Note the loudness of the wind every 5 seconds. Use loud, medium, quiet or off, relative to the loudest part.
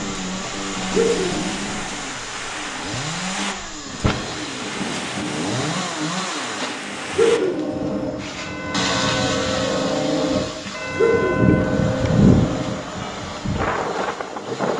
medium, medium, loud.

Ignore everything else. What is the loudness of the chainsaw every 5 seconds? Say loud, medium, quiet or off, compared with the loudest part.
loud, loud, medium.